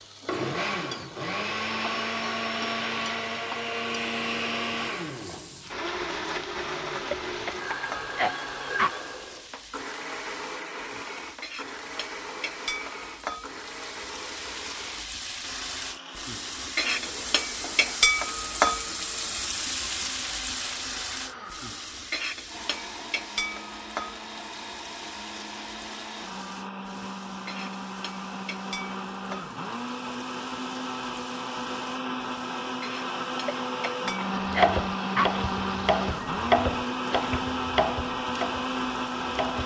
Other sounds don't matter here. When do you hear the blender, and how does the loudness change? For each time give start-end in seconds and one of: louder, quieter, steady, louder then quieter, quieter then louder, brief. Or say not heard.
0.0-39.6 quieter then louder.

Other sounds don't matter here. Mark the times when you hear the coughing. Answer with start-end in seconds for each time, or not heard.
7.1-9.0, 33.5-35.5.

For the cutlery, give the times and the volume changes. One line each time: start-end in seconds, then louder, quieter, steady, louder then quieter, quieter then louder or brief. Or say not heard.
not heard.